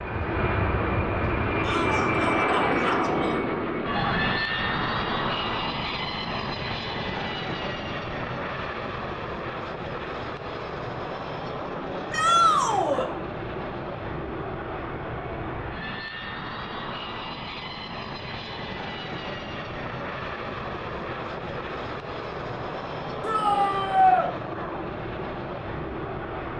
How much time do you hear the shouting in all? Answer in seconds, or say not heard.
4 s.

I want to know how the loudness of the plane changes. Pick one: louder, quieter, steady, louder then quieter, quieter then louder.
quieter.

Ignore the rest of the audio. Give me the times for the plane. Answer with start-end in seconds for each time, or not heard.
0.0-26.5.